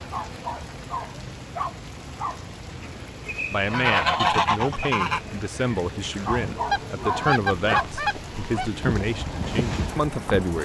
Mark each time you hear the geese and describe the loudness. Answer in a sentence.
You can hear the geese from 2.8 to 10.6 s, getting quieter.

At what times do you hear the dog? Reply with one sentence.
You can hear the dog from 0.1 to 2.5 s and from 6.2 to 7.9 s.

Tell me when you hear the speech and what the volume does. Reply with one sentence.
You can hear the speech from 3.5 to 10.6 s, at a steady volume.